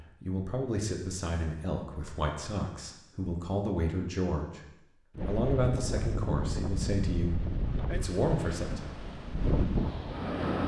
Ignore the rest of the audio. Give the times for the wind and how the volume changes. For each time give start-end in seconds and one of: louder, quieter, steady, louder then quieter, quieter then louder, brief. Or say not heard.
5.2-10.6 quieter then louder.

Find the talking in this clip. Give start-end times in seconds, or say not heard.
0.0-4.6, 5.2-8.9.